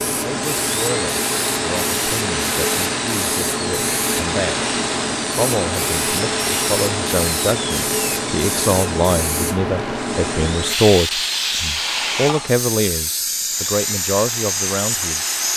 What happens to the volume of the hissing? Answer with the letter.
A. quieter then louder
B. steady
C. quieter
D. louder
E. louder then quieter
B.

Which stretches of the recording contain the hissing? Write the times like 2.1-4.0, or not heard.
0.0-15.5.